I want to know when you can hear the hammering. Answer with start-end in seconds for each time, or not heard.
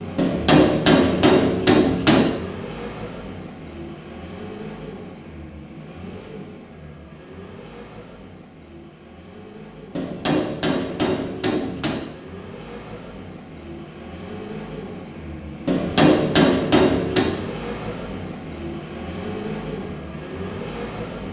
0.1-2.3, 9.9-12.1, 15.7-17.3.